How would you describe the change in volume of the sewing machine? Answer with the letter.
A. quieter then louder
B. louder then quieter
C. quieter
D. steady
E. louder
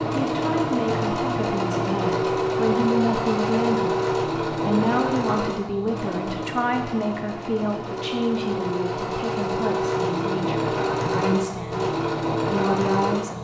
A.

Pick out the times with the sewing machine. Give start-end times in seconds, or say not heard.
0.0-13.3.